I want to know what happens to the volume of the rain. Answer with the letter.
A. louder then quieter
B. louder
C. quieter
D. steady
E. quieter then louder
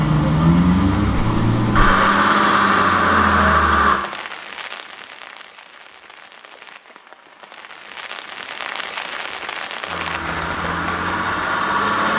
E.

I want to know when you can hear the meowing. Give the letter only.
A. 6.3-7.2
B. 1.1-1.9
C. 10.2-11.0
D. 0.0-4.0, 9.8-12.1
B.